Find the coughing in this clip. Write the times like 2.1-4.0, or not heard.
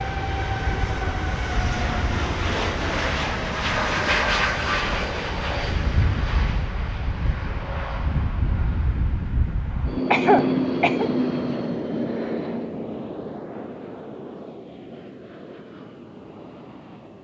10.1-11.1.